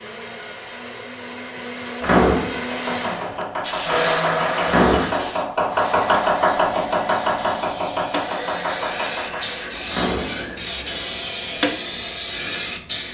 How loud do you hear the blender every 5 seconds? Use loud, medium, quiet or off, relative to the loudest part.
loud, medium, off.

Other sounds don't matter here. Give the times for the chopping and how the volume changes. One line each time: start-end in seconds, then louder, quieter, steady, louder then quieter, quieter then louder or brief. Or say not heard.
2.6-9.6 louder then quieter.